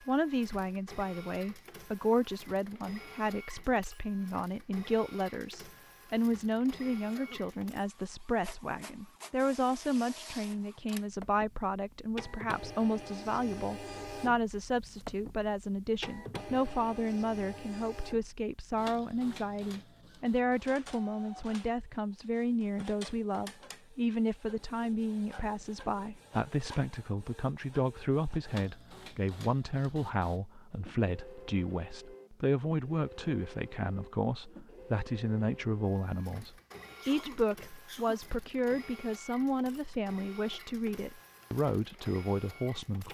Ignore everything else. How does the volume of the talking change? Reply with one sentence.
The loudness of the talking stays about the same.